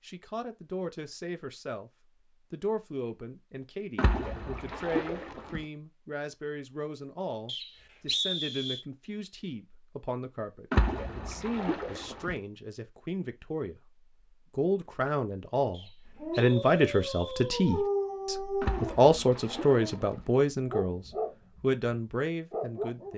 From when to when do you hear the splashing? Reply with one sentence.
You can hear the splashing from 4.0 to 5.7 s, from 10.7 to 12.3 s and from 18.6 to 20.2 s.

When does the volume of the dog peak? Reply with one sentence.
The loudest moment of the dog is at 18 seconds.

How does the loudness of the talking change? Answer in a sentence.
The loudness of the talking goes up.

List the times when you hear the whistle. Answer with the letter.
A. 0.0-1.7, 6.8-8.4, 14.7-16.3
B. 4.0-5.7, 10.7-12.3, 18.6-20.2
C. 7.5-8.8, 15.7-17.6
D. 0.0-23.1
C.